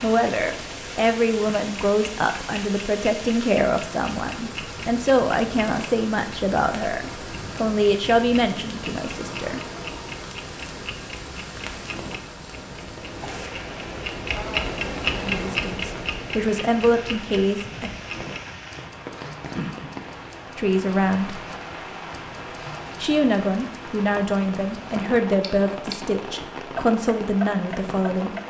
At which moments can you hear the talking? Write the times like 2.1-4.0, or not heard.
0.0-9.6, 14.3-17.9, 20.6-21.4, 23.0-28.4.